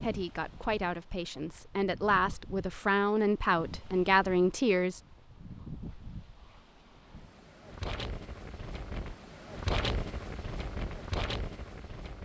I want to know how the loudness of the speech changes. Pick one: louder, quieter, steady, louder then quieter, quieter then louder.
louder.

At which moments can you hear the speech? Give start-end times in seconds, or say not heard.
0.0-5.0.